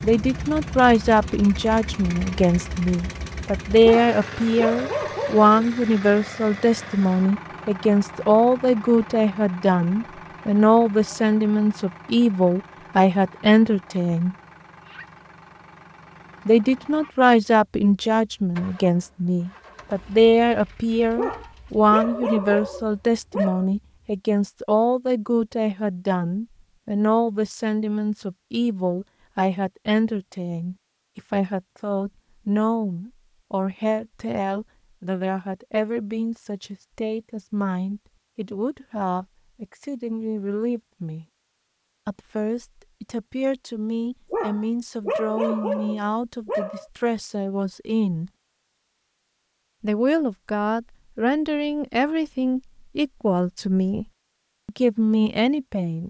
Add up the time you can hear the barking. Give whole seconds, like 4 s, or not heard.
7 s.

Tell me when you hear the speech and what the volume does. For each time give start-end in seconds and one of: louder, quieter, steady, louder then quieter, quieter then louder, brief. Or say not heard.
0.0-14.3 steady
16.4-41.2 quieter
42.0-48.3 steady
49.8-54.0 steady
54.6-56.0 brief.